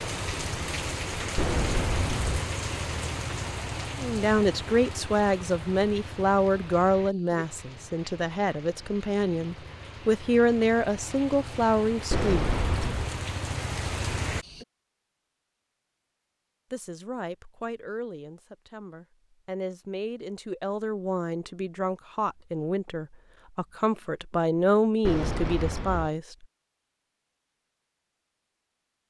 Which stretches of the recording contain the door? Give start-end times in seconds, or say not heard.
1.4-2.4, 12.1-13.2, 25.1-26.1.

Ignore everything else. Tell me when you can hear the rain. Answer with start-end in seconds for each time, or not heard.
0.0-14.7.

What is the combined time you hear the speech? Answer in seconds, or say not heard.
18 s.